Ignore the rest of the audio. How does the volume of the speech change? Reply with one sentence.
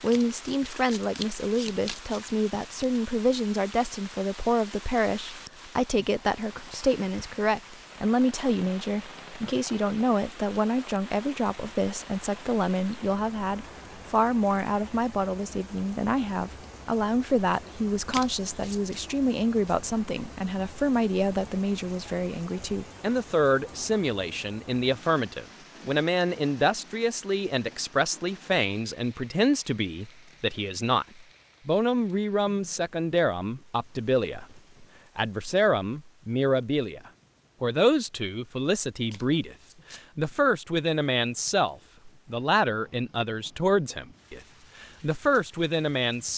The loudness of the speech stays about the same.